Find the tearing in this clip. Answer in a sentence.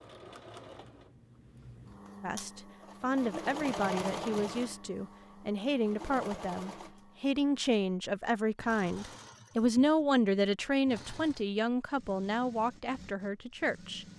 The tearing can't be heard in this clip.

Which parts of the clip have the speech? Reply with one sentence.
The speech can be heard from 2.2 to 14.1 s.